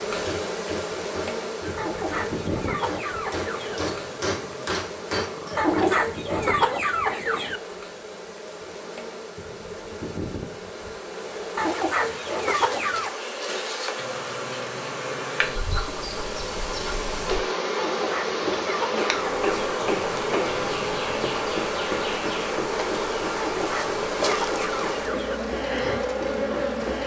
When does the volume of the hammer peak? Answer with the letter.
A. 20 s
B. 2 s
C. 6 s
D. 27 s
C.